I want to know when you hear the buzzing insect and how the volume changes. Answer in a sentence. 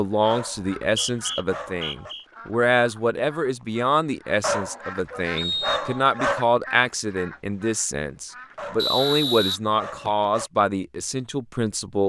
The buzzing insect can't be heard in this clip.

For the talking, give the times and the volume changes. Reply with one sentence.
You can hear the talking from 0.0 to 12.0 s, at a steady volume.